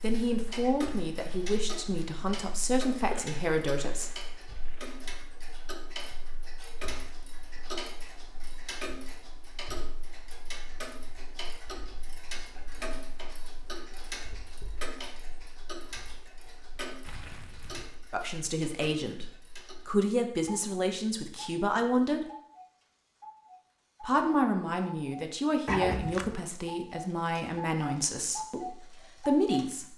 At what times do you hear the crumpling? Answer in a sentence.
The crumpling can be heard from 2.9 to 5.1 s, from 17.0 to 17.9 s and from 25.6 to 26.4 s.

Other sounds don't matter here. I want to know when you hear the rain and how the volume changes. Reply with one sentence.
You can't hear the rain here.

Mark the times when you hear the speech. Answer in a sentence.
The speech can be heard from 0.0 to 4.1 s, from 18.1 to 22.2 s and from 24.0 to 29.9 s.